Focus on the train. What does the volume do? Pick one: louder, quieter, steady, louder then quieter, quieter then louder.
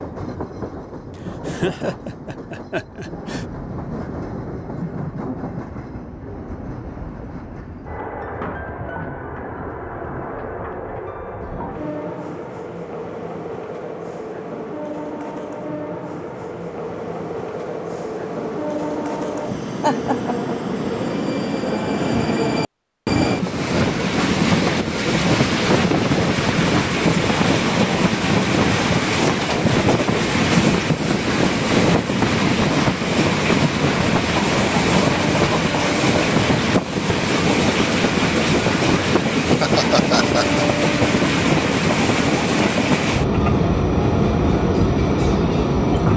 louder.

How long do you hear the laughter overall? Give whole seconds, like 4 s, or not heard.
4 s.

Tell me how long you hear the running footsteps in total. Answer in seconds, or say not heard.
not heard.